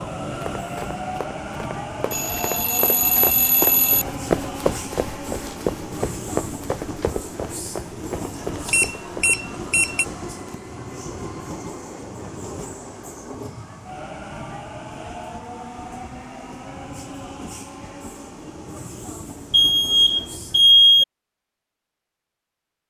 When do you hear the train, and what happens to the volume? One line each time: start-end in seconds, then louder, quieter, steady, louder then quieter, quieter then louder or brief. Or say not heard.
0.0-20.6 quieter.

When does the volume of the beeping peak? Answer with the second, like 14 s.
21 s.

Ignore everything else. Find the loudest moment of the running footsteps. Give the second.
4 s.